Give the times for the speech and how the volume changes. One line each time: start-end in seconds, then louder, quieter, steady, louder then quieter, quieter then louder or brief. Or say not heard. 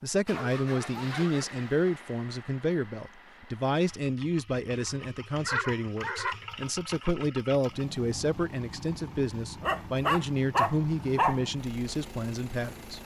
0.0-12.9 steady.